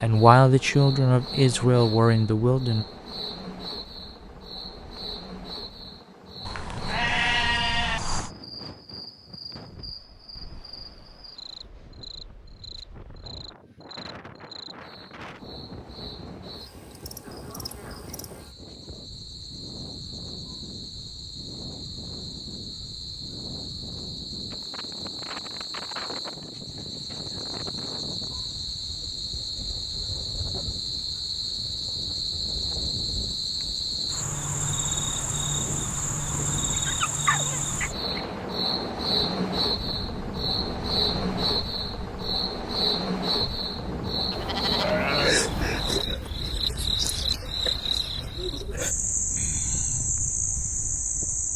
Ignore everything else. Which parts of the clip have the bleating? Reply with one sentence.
The bleating can be heard from 6.5 to 8.3 s and from 44.3 to 46.0 s.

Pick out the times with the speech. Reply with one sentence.
You can hear the speech from 0.0 to 2.9 s.